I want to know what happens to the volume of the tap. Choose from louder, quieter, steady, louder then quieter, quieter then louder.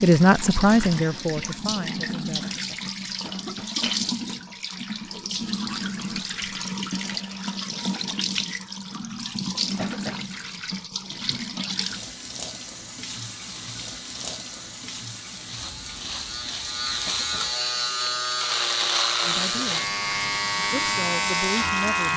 quieter.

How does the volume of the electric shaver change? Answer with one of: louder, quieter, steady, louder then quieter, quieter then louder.
louder.